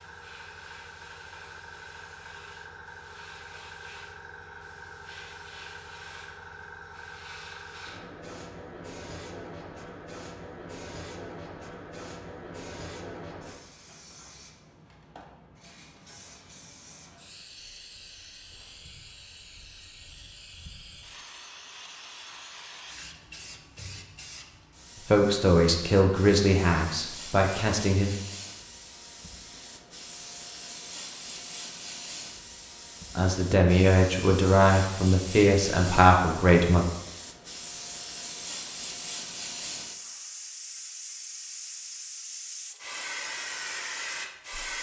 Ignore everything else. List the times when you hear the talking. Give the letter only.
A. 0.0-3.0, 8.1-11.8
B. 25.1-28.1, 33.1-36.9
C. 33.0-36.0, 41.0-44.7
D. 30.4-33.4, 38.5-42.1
B.